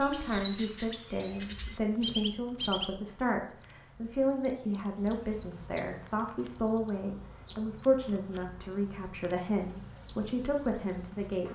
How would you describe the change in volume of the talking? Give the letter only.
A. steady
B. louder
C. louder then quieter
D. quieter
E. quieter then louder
A.